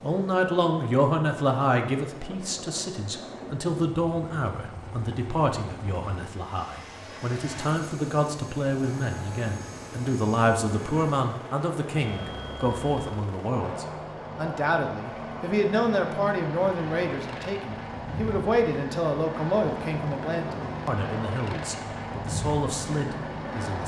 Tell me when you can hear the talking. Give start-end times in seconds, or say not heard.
0.0-23.8.